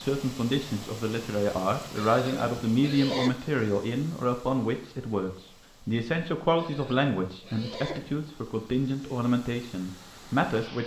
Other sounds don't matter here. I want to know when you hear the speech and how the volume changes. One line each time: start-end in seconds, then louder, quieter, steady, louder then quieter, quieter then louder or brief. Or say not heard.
0.0-10.8 steady.